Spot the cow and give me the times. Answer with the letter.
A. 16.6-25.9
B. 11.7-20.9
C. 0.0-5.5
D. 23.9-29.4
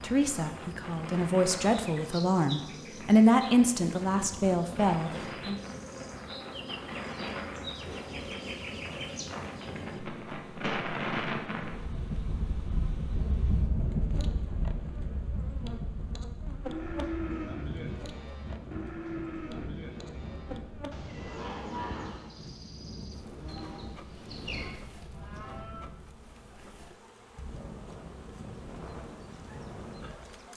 A.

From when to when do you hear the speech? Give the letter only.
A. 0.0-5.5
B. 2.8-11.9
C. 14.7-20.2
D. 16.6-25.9
A.